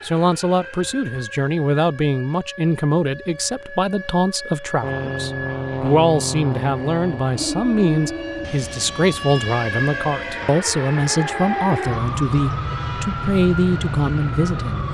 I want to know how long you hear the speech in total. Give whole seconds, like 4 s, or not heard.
15 s.